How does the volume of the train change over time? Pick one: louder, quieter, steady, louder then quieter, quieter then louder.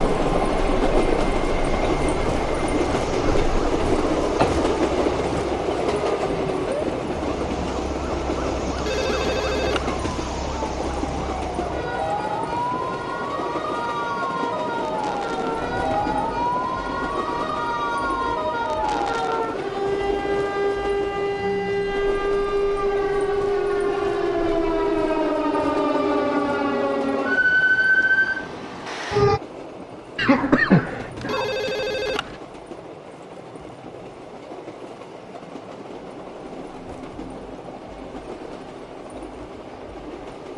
quieter.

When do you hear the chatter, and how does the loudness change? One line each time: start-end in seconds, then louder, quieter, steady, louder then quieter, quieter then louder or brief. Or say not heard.
not heard.